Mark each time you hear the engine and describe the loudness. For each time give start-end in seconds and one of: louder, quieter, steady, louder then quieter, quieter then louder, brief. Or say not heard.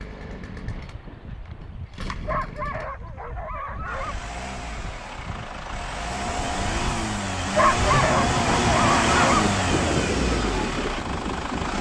0.0-11.7 louder.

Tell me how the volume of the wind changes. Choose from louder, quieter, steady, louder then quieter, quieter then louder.
louder.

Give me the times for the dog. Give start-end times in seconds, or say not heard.
2.2-4.2, 7.5-9.4.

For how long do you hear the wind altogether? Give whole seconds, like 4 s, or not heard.
12 s.